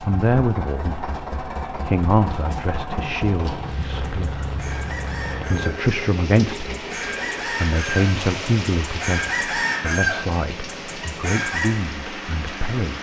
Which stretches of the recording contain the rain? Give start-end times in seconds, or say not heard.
3.5-12.9.